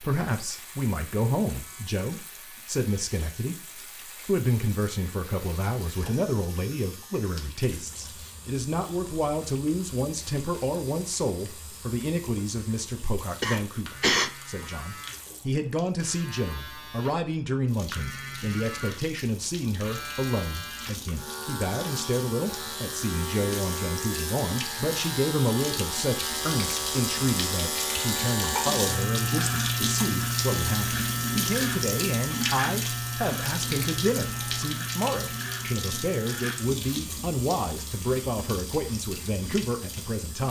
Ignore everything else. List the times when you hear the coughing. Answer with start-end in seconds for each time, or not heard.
13.4-14.3, 28.4-30.1.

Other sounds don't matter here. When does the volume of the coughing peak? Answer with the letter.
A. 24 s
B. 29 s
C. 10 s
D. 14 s
D.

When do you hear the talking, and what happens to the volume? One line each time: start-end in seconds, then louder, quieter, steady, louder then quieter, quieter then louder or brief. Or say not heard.
0.0-40.4 steady.